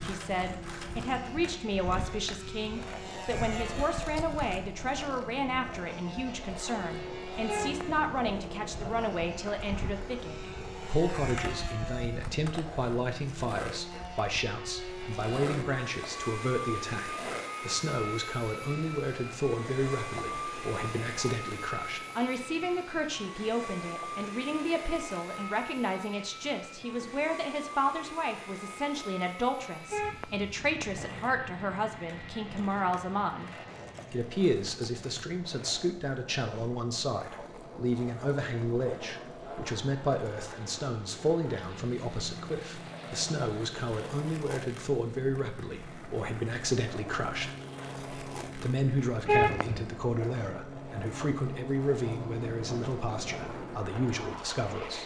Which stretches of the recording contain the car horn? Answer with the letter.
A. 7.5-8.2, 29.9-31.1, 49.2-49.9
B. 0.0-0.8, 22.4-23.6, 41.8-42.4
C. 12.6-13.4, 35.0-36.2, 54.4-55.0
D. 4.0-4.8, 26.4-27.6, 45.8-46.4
A.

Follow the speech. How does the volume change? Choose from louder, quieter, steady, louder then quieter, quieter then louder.
steady.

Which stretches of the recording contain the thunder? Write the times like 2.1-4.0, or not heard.
not heard.